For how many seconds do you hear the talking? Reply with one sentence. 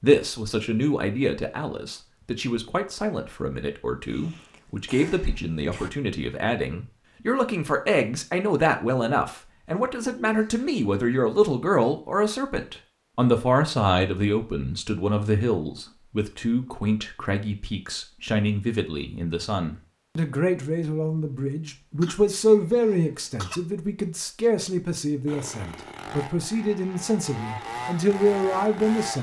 The talking can be heard for 29 seconds in total.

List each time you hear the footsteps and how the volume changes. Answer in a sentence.
The footsteps can't be heard in this clip.